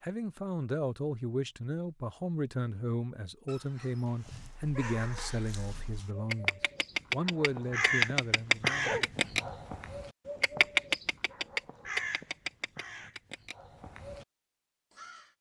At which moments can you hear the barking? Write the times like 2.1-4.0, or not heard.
3.5-6.1, 8.3-9.6.